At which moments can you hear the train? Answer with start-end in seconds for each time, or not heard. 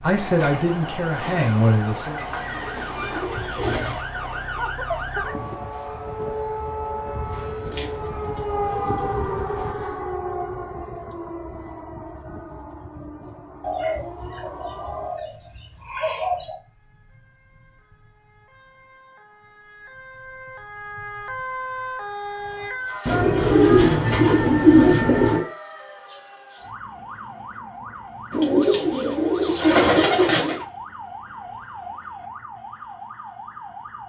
0.0-9.8.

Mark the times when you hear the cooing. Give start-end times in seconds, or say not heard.
2.1-4.0, 7.7-10.1, 13.6-16.6, 23.1-25.4, 28.3-30.6.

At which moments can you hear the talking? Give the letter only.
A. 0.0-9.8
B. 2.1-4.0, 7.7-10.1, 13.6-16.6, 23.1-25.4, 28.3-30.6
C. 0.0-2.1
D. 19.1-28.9
C.